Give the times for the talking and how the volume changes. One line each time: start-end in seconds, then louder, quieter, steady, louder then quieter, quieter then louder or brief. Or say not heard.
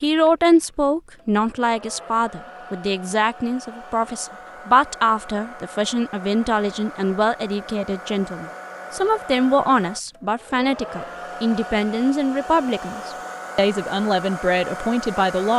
0.0-15.5 steady.